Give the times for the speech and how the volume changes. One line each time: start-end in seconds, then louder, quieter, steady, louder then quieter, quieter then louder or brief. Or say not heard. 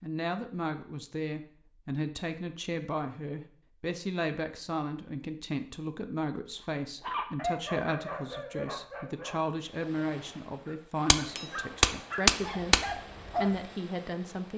0.0-14.5 steady.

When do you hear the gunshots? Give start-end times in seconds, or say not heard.
11.1-12.8.